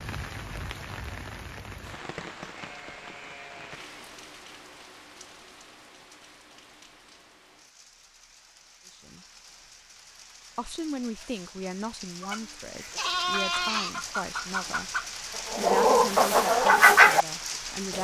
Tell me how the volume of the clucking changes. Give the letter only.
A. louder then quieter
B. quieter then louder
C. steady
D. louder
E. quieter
D.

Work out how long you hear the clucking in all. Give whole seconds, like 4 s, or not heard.
5 s.